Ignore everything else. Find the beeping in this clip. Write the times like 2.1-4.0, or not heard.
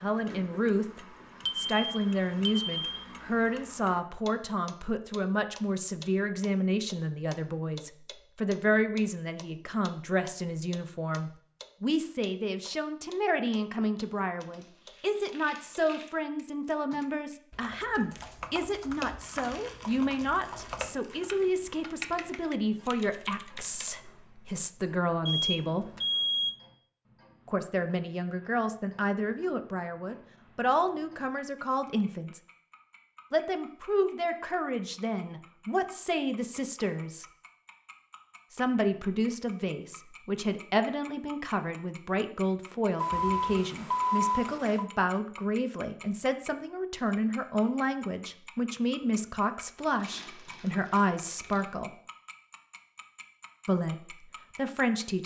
1.4-3.0, 25.2-26.6, 43.0-44.9.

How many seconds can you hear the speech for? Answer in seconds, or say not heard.
50 s.